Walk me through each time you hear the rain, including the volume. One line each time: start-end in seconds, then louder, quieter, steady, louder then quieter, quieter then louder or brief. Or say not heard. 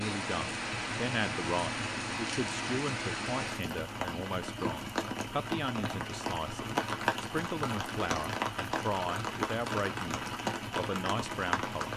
0.0-11.9 steady.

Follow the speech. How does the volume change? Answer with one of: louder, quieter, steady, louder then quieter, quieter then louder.
steady.